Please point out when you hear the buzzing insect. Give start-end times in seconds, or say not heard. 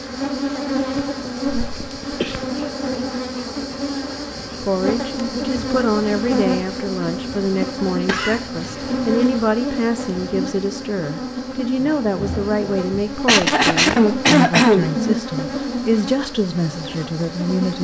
0.0-17.7.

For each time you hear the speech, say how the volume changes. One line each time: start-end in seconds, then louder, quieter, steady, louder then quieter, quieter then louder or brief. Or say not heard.
4.5-17.7 steady.